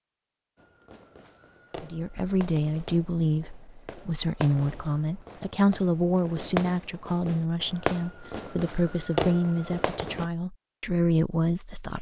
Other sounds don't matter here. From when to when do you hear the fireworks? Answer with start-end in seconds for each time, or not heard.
0.6-10.2.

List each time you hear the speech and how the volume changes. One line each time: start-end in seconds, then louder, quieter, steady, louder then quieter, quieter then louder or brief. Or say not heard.
1.8-11.9 steady.